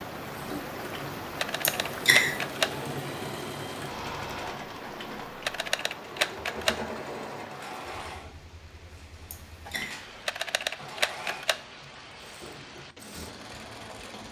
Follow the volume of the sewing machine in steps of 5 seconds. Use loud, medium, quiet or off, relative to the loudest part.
loud, loud, medium.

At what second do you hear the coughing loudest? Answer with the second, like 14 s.
2 s.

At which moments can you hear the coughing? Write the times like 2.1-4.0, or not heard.
1.6-2.4, 9.3-10.0.